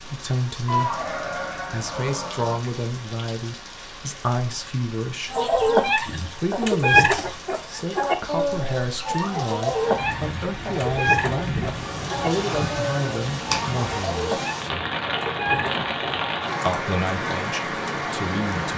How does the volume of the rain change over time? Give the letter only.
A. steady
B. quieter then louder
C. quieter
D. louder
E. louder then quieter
D.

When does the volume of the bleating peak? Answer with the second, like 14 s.
1 s.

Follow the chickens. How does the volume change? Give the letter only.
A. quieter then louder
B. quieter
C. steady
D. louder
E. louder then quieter
B.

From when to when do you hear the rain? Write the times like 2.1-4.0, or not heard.
0.0-18.7.